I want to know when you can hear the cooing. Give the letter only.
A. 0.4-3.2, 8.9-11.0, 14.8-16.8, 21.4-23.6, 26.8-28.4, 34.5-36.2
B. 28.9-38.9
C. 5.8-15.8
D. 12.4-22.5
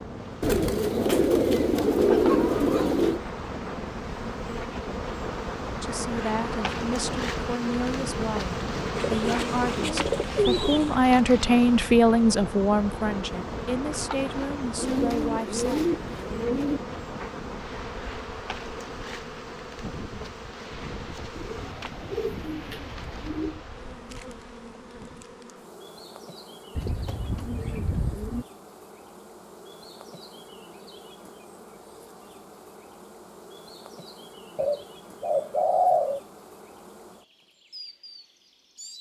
A.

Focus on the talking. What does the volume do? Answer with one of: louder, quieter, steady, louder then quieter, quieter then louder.
louder then quieter.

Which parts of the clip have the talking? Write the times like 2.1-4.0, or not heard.
5.8-15.8.